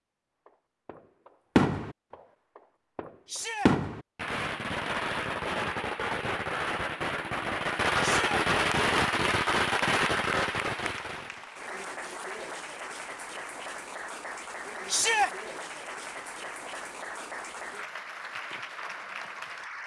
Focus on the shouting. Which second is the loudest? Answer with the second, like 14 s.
15 s.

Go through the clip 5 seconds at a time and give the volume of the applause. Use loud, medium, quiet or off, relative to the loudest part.
off, off, loud, loud.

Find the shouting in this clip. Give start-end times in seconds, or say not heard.
3.2-3.7, 8.0-8.4, 14.8-15.3.